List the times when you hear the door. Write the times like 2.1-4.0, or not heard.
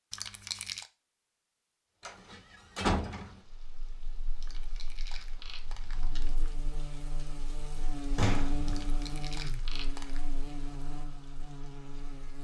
2.0-3.4, 7.8-8.9.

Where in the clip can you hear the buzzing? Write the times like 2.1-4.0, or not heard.
3.7-12.3.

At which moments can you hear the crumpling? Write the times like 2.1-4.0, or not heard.
0.1-0.9, 4.4-6.5, 8.7-10.2.